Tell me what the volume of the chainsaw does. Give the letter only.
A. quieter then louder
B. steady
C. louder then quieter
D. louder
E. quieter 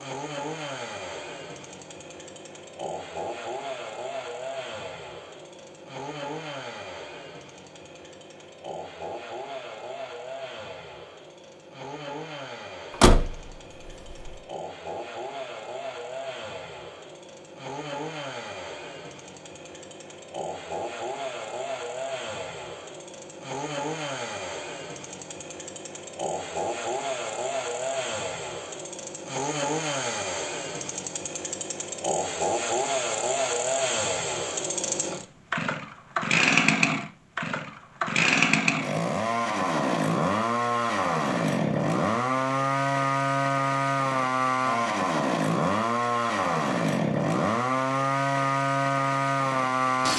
D.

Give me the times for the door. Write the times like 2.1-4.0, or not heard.
13.0-14.3.